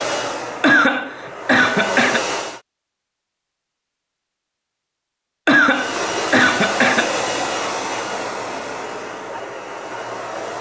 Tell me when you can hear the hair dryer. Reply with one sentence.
The hair dryer can be heard from 0.0 to 2.6 s and from 5.7 to 10.5 s.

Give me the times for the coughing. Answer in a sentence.
You can hear the coughing from 0.6 to 2.2 s and from 5.5 to 7.2 s.